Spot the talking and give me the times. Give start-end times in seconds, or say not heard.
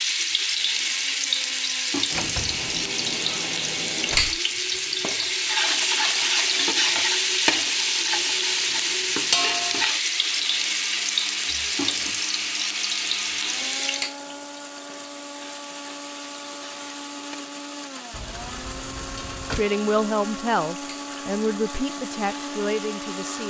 19.6-23.4.